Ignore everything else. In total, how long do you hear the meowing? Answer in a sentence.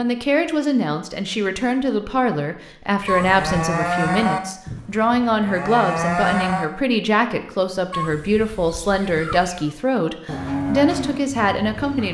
The meowing can be heard for 2 seconds in total.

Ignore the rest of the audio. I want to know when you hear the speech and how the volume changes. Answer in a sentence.
The speech can be heard from 0.0 to 12.0 s, at a steady volume.